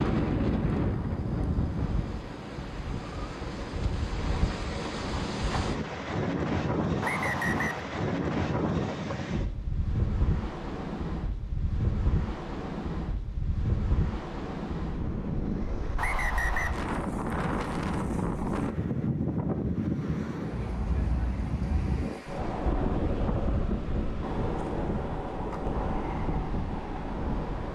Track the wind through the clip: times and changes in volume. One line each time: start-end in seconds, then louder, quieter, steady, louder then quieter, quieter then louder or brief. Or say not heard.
0.0-27.7 steady.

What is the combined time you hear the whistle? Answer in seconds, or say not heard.
2 s.